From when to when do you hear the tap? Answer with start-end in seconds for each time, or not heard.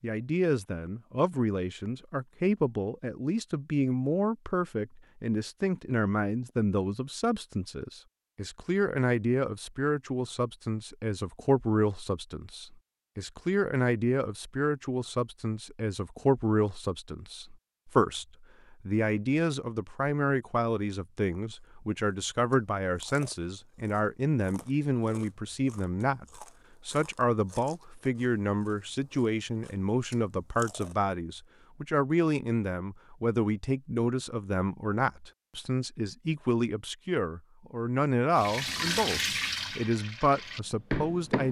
38.4-41.4.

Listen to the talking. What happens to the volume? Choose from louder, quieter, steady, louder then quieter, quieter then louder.
steady.